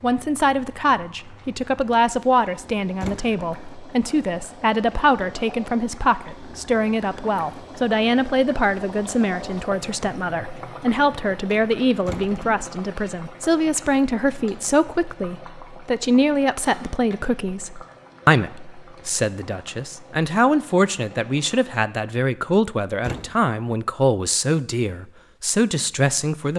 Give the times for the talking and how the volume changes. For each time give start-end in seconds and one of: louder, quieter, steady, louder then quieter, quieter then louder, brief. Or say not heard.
0.0-26.5 steady.